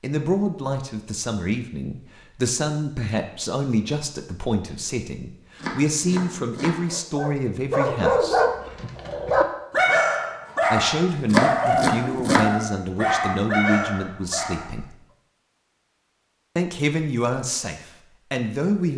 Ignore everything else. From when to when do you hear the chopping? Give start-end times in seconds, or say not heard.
5.5-6.8, 11.3-12.6.